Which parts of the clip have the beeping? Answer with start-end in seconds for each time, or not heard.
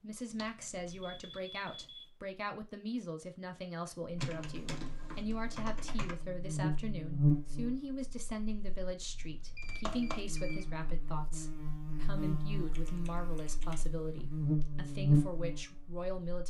0.9-2.1, 9.1-10.7.